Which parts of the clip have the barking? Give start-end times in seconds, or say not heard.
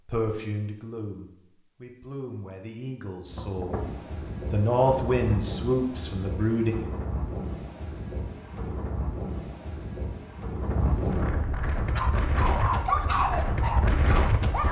11.7-14.6.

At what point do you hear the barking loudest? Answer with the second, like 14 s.
13 s.